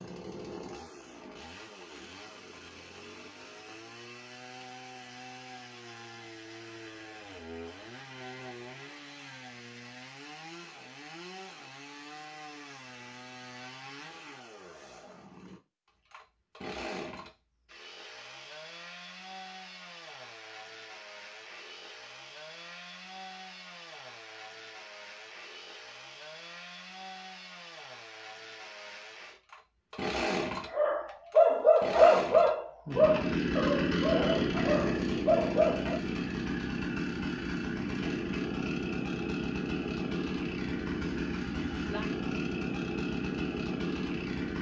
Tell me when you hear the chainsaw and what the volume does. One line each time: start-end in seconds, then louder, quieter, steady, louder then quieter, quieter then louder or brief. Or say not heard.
0.0-44.5 louder.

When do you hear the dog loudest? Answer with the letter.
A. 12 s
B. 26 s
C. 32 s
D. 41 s
C.